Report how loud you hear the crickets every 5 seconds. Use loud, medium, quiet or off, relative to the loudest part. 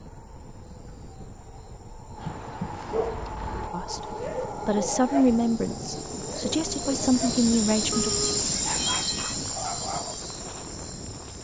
medium, loud, medium.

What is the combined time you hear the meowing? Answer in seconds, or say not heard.
2 s.